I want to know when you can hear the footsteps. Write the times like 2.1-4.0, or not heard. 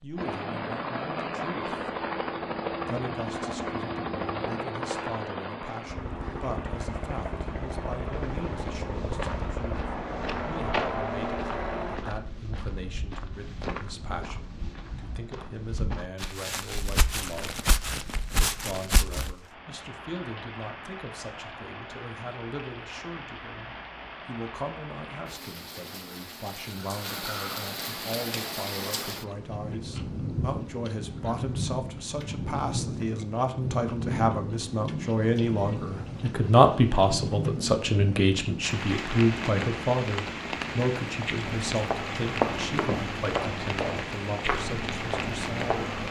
8.1-19.4, 41.5-46.0.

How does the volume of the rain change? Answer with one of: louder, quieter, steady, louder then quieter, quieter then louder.
louder.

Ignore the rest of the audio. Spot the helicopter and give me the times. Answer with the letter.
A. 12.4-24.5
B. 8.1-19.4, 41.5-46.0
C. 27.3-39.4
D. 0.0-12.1
D.